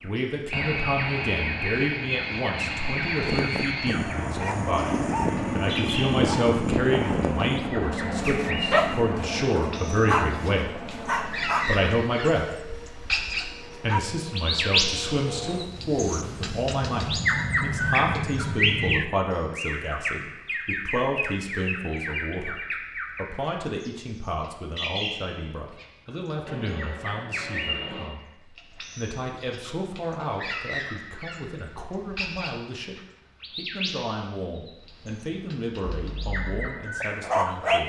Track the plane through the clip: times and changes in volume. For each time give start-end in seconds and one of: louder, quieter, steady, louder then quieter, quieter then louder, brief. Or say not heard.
0.0-19.1 quieter then louder
26.4-28.1 brief.